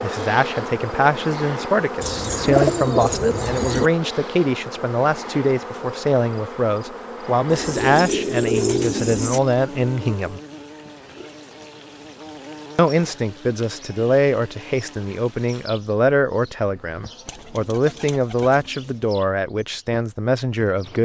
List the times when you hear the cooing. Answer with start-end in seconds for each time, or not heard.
2.0-3.9, 7.5-9.4, 17.2-19.1.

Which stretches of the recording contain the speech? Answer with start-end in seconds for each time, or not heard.
0.0-10.4, 12.8-20.9.